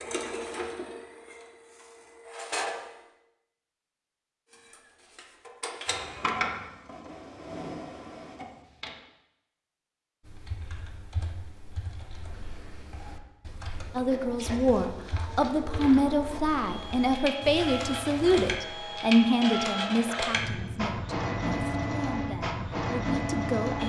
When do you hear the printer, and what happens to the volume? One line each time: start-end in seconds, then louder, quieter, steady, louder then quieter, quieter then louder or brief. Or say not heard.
0.0-3.0 brief
4.5-8.9 louder then quieter
13.8-23.8 louder.